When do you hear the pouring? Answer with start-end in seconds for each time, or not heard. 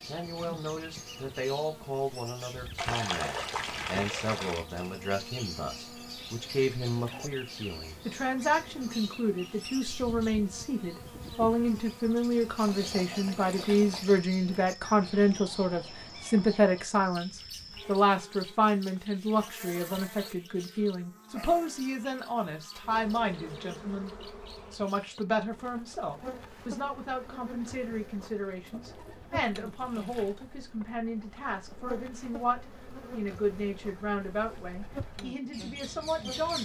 2.8-4.7, 12.6-14.2, 28.7-30.4.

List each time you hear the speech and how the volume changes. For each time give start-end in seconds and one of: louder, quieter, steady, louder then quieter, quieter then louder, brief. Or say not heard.
0.1-36.6 louder then quieter.